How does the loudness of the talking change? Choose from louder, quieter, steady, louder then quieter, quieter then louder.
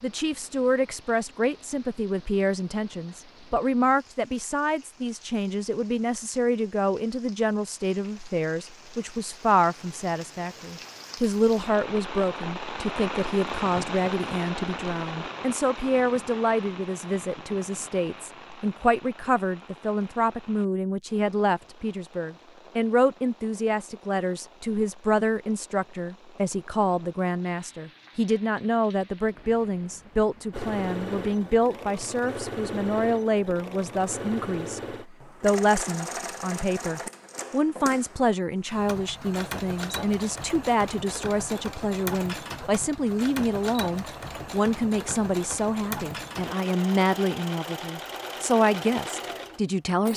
steady.